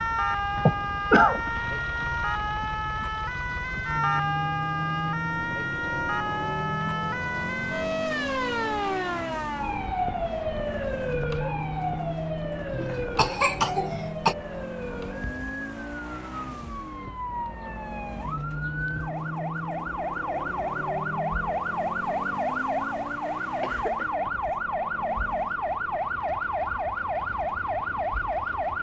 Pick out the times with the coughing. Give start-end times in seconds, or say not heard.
0.6-1.5, 12.7-14.3, 23.1-24.1.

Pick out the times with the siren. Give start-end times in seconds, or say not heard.
0.0-28.7.